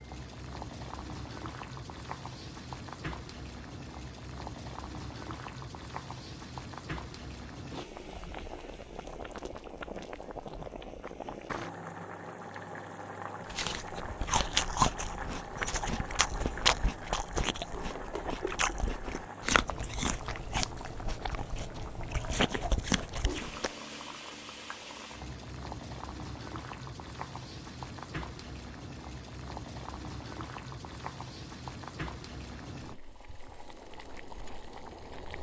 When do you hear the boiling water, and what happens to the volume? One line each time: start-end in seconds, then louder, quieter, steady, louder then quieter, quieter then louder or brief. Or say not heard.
0.0-35.3 steady.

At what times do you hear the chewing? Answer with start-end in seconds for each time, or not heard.
13.5-23.7.